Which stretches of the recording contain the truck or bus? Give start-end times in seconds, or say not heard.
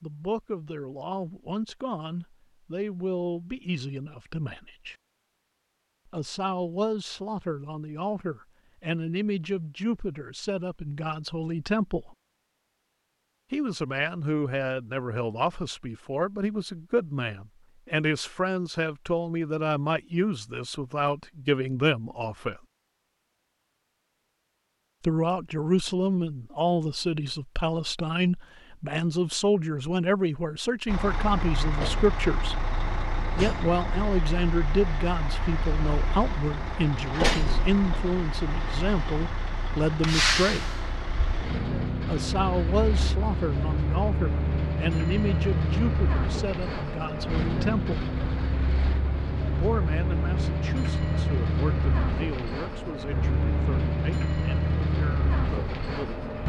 30.9-56.4.